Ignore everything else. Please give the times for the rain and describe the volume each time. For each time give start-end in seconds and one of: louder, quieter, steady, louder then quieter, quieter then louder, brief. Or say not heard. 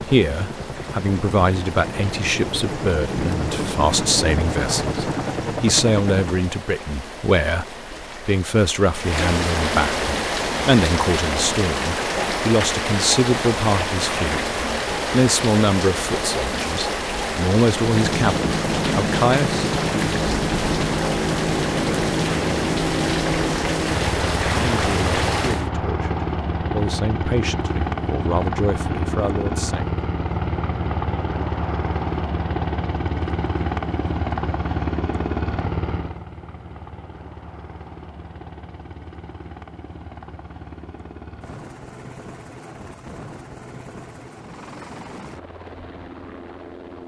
0.0-25.7 louder.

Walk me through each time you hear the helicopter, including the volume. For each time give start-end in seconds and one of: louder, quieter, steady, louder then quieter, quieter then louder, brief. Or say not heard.
0.0-6.5 louder
17.8-47.0 quieter.